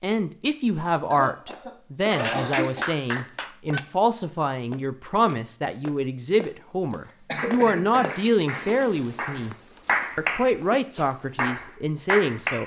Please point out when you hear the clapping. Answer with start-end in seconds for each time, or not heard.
2.0-3.8, 7.3-10.6, 11.3-12.6.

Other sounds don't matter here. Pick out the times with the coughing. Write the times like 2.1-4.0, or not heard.
1.1-2.9, 6.4-8.6.